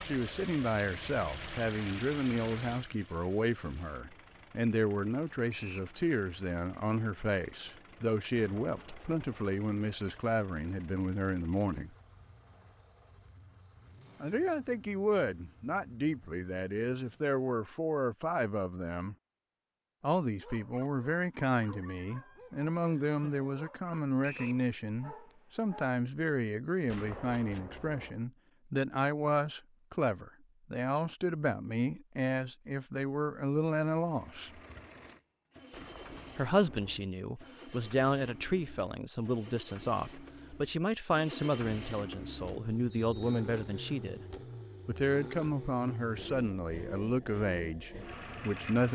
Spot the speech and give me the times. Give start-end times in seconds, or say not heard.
0.0-11.9, 14.2-19.1, 20.0-34.6, 36.4-44.2, 44.9-48.9.